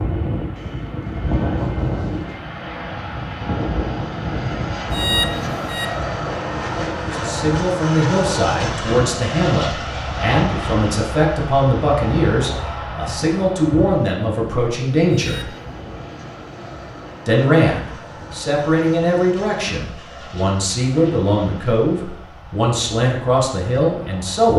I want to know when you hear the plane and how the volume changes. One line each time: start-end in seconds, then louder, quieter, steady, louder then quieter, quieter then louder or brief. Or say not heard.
0.0-24.5 quieter.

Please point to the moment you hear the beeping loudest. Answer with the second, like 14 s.
5 s.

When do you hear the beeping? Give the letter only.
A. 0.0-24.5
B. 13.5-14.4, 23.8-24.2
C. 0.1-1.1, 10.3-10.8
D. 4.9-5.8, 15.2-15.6
D.